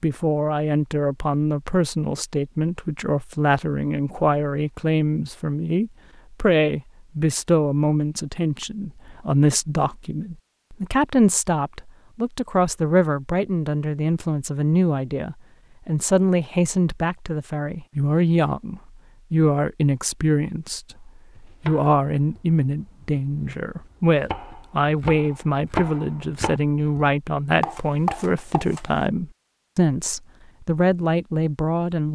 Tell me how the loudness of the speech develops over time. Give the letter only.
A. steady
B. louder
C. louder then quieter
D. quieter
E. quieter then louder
A.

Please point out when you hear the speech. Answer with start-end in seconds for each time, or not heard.
0.0-32.1.